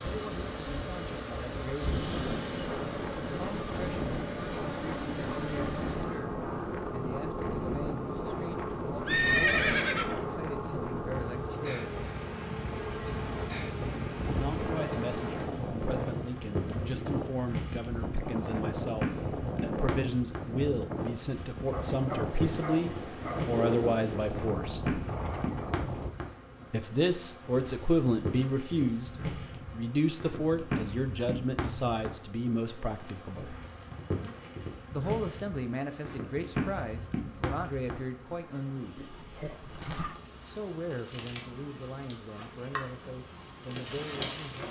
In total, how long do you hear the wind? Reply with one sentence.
You can hear the wind for 26 seconds altogether.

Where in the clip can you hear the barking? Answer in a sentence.
The barking can be heard from 21.7 to 23.6 s.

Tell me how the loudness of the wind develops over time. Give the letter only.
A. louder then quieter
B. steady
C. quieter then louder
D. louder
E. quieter
B.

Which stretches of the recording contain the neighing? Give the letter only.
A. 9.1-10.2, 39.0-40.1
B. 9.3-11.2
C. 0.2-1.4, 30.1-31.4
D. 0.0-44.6
A.